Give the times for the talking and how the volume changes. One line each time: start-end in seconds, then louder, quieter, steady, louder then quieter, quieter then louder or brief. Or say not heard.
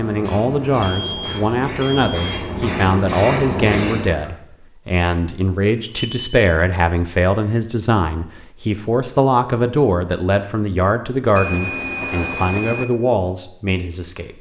0.0-14.3 steady.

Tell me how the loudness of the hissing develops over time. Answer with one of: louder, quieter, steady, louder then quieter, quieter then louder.
louder.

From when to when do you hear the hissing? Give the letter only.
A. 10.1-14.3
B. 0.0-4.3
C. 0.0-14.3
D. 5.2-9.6
B.